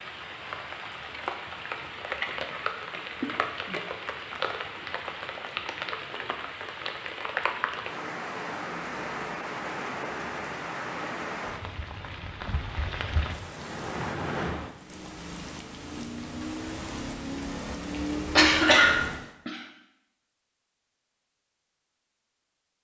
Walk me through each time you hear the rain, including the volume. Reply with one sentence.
You can hear the rain from 0.0 to 19.3 s, at a steady volume.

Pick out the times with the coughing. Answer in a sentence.
You can hear the coughing from 18.4 to 19.6 s.